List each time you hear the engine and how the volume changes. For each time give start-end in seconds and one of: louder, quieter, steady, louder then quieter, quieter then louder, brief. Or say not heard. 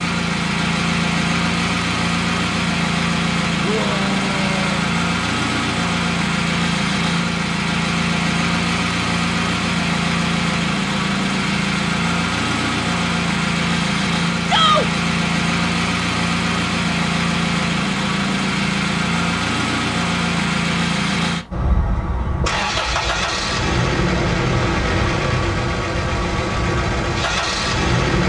0.0-28.2 steady.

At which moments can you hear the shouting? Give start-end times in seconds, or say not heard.
3.6-4.9, 14.4-14.8.